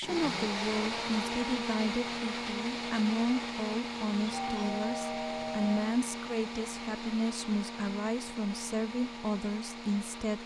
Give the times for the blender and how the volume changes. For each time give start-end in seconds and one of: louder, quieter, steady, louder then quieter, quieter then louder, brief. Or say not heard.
0.0-10.4 quieter.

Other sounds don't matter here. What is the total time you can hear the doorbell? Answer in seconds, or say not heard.
2 s.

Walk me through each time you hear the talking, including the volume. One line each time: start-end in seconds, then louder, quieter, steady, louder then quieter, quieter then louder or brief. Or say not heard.
0.0-10.4 steady.